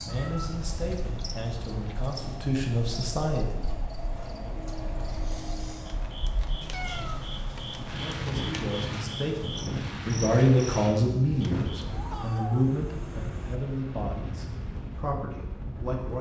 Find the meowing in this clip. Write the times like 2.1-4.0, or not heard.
0.1-2.1, 6.6-7.9, 11.8-13.6.